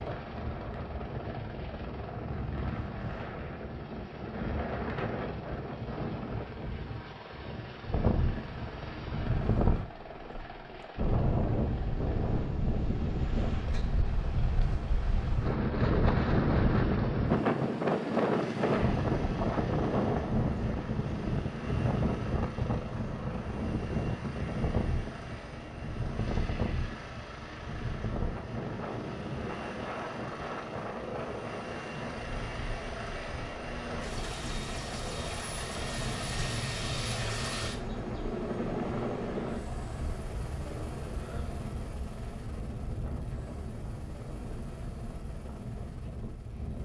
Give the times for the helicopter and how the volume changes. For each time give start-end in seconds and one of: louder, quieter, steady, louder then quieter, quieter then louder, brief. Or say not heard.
0.0-46.8 louder.